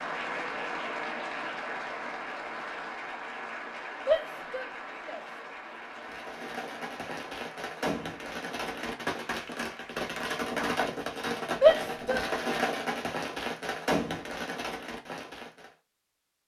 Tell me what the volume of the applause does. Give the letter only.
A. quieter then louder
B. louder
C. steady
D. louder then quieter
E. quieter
E.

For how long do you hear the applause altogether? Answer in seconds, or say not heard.
10 s.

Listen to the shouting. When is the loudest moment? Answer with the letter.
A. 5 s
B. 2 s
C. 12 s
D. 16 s
C.